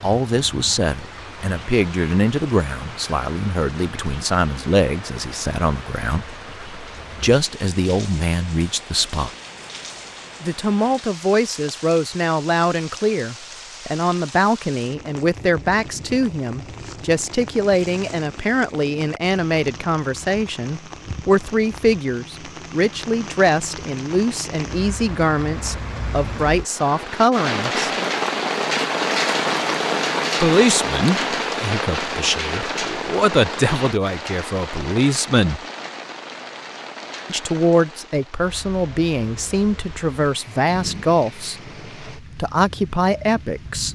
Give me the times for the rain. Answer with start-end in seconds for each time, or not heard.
0.0-43.8.